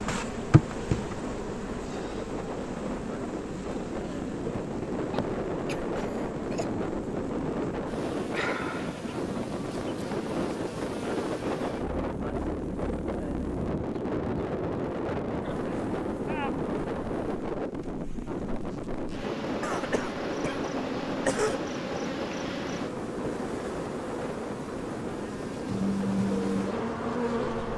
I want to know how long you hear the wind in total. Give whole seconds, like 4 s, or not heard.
28 s.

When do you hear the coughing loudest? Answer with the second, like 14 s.
21 s.